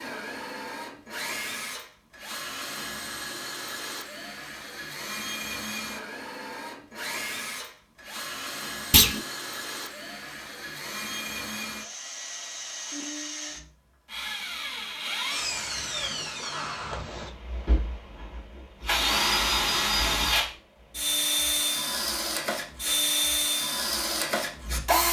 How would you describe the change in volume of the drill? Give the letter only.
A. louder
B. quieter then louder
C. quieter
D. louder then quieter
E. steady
A.